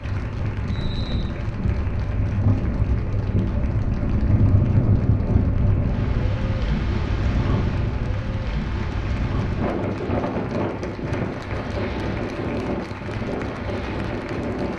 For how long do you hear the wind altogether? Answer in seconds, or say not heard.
15 s.